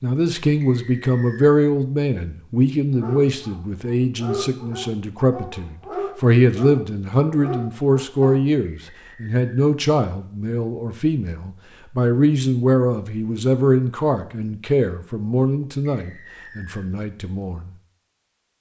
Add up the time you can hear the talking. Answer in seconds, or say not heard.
18 s.